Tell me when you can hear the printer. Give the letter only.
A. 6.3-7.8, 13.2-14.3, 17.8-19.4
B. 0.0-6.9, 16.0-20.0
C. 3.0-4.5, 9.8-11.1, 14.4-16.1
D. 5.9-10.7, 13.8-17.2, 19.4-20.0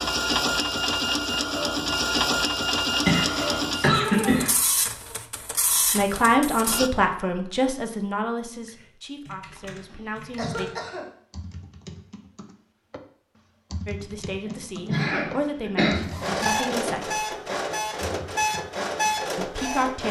B.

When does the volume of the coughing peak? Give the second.
4 s.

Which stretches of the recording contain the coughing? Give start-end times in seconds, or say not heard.
3.0-4.5, 9.8-11.1, 14.4-16.1.